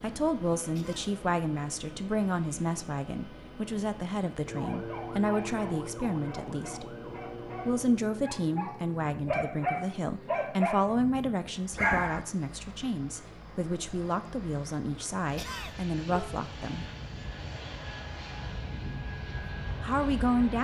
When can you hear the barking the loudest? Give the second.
12 s.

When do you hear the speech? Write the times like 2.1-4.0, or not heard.
0.0-7.0, 7.7-16.9, 19.8-20.5.